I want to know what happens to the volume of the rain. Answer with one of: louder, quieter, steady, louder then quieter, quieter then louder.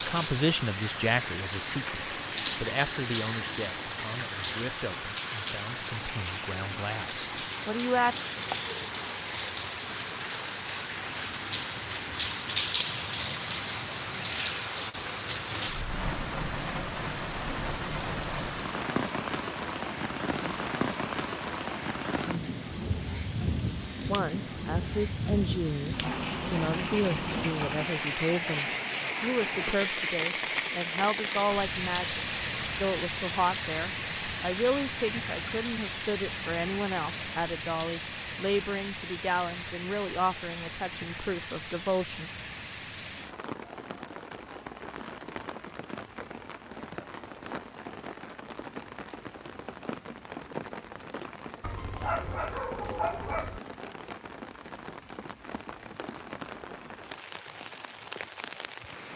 quieter.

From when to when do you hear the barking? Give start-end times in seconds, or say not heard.
51.6-53.6.